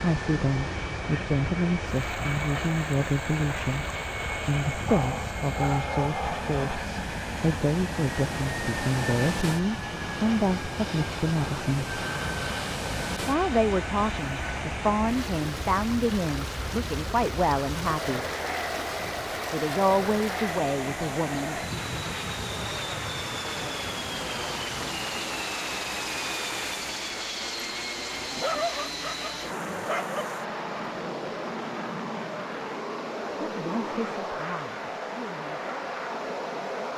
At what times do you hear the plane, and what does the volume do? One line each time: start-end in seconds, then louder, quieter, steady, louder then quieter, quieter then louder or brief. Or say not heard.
0.0-36.9 steady.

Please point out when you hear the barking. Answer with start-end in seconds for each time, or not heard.
4.8-6.8, 28.4-30.3.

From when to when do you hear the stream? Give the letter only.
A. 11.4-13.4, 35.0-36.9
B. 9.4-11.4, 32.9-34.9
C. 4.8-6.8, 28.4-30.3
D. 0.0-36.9
D.